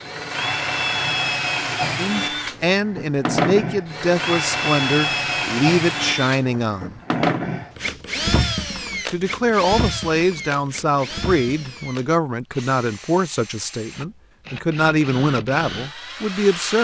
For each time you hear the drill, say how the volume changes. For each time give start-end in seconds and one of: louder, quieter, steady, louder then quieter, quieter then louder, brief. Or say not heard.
0.0-16.7 quieter.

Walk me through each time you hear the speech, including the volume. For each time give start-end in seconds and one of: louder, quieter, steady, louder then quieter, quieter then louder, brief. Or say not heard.
1.9-7.0 steady
9.1-16.7 steady.